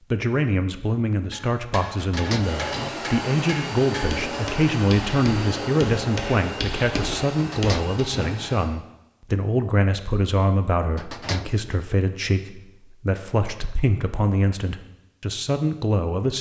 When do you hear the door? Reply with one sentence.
You can hear the door from 1.9 to 3.0 s, from 7.3 to 8.6 s and from 10.9 to 11.8 s.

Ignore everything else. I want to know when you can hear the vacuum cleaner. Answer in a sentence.
You can hear the vacuum cleaner from 2.4 to 8.7 s.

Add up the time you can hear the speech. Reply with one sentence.
You can hear the speech for 16 seconds altogether.